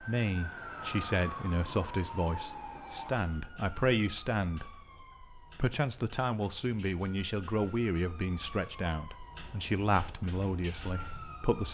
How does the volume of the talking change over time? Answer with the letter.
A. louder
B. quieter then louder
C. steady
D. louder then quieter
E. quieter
C.